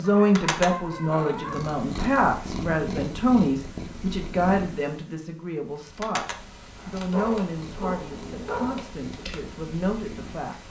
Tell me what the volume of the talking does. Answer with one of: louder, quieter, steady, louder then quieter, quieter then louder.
quieter.